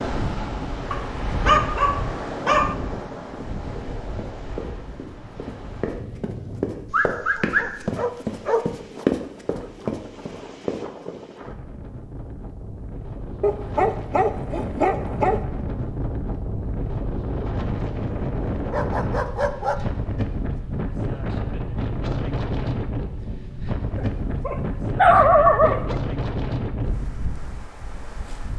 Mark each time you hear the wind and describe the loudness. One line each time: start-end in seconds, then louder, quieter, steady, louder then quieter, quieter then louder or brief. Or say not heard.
0.0-28.5 quieter then louder.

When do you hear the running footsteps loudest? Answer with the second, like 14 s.
9 s.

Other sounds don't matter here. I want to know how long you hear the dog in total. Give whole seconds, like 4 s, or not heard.
9 s.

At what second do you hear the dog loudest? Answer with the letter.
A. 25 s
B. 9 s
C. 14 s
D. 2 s
A.